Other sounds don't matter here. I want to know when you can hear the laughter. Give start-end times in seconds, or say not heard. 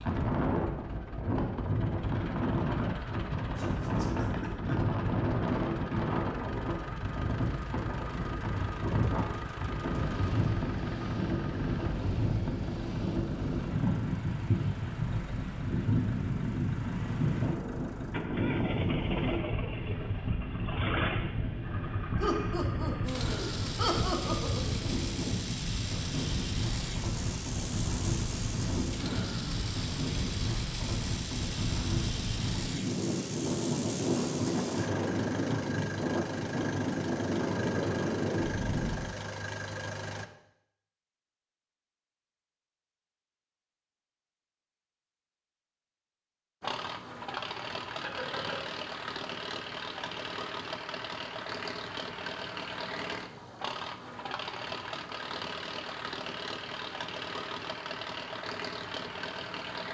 3.5-4.8, 22.2-24.8, 48.0-48.7.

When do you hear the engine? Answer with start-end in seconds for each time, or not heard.
0.0-40.2, 46.6-59.8.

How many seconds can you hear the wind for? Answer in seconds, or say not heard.
39 s.